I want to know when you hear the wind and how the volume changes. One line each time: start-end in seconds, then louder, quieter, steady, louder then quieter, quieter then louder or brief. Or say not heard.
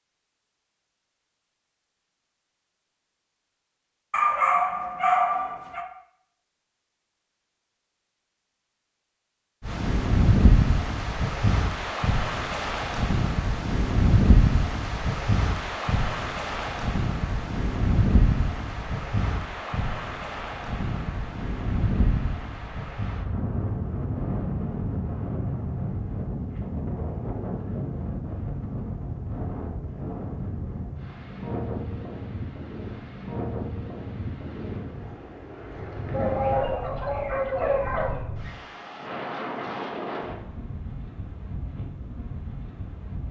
9.6-43.2 quieter.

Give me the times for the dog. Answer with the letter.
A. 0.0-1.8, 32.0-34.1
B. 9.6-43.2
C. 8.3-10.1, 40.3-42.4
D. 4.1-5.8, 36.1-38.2
D.